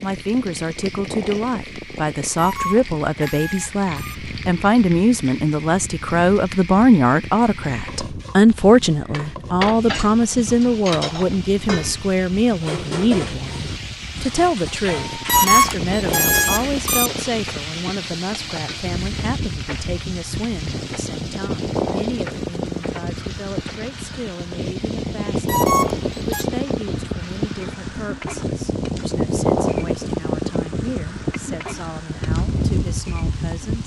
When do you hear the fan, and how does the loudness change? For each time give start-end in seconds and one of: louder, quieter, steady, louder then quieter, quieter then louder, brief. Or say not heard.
0.0-33.8 louder.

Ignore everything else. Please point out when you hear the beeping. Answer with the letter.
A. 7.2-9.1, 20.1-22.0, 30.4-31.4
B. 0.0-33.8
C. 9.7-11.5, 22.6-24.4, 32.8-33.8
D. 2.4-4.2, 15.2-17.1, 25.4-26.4
D.